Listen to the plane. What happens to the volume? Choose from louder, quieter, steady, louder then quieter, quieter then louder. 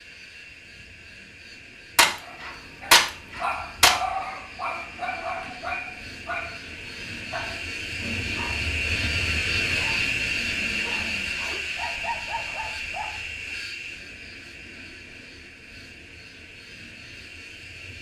louder then quieter.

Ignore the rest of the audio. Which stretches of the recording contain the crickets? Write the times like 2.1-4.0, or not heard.
not heard.